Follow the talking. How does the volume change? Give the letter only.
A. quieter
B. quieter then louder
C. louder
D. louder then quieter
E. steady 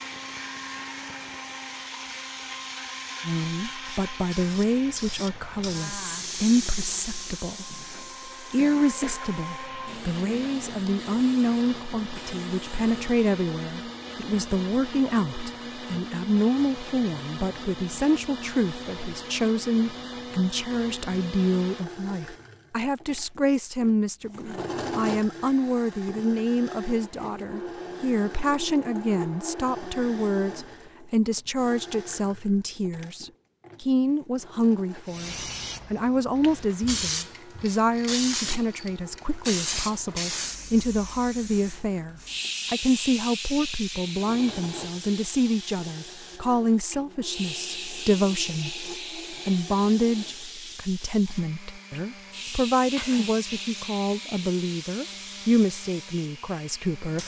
E.